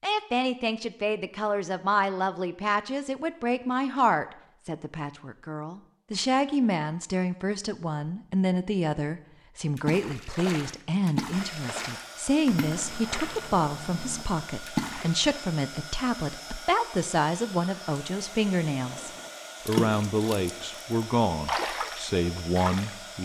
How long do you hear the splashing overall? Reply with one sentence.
The splashing can be heard for 10 seconds in total.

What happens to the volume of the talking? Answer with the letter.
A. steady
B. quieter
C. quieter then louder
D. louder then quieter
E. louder
A.